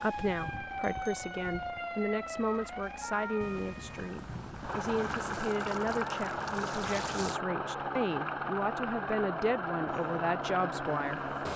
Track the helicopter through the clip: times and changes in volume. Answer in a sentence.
The helicopter can be heard from 0.0 to 11.5 s, getting louder.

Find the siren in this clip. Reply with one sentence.
The siren can be heard from 0.0 to 7.4 s and from 9.8 to 11.5 s.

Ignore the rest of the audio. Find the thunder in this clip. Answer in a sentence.
You can hear the thunder from 3.4 to 5.4 s.